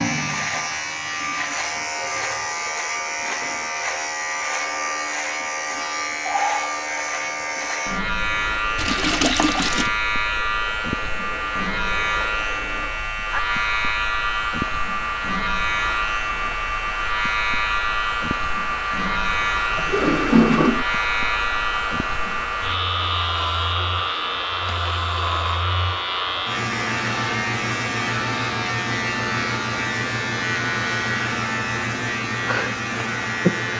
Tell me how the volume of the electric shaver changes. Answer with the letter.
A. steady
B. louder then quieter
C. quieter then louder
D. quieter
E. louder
A.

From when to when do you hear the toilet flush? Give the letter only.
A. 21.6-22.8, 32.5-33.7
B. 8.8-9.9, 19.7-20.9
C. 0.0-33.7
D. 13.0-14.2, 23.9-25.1
B.